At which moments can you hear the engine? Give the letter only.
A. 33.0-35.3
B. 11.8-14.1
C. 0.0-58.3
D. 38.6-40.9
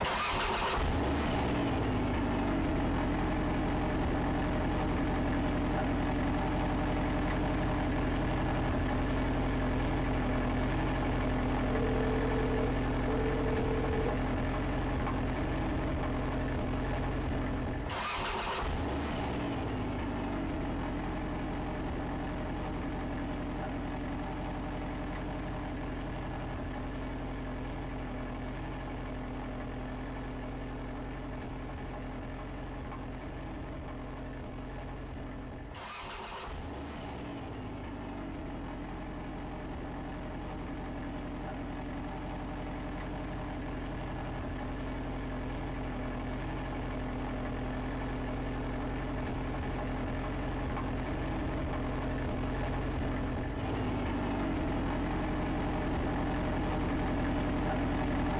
C.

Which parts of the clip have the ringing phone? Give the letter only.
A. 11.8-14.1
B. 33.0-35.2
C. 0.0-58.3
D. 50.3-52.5
A.